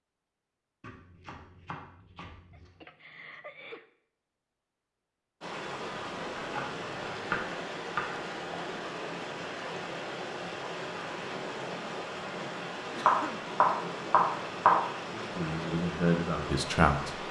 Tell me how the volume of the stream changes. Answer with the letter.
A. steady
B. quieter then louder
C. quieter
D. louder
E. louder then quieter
A.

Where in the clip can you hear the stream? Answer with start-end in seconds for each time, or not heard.
5.4-17.2.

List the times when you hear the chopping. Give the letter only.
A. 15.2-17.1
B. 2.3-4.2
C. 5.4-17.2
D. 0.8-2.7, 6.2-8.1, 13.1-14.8
D.